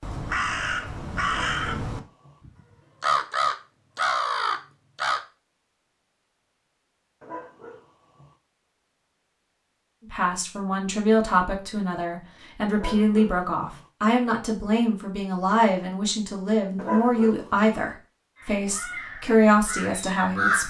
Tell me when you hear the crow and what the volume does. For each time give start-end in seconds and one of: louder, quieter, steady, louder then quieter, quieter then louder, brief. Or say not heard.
0.0-5.2 quieter then louder
18.4-20.6 brief.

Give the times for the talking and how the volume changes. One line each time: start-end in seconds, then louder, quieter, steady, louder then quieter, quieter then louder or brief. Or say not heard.
10.1-20.6 steady.